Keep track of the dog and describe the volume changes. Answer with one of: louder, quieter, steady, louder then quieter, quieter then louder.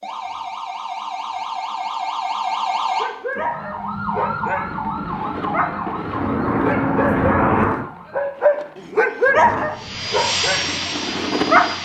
louder.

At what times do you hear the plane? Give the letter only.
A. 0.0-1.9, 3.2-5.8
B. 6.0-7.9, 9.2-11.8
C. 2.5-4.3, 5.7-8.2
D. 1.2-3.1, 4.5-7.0
B.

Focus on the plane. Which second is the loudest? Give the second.
7 s.